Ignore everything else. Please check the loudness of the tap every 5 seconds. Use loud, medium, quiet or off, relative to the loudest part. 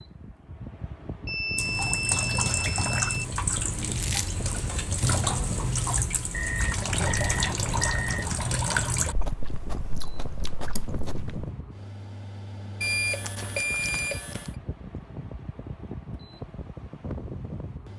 loud, loud, off, off.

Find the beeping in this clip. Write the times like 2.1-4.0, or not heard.
1.2-3.2, 6.3-8.3, 12.8-14.5.